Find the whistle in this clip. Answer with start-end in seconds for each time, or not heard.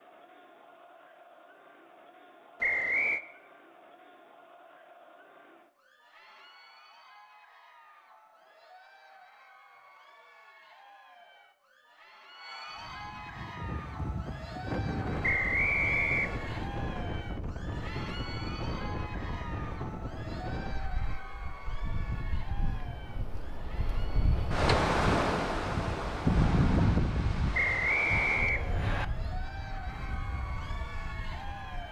2.6-3.2, 15.2-16.6, 27.5-29.1.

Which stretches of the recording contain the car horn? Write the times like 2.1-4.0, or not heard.
not heard.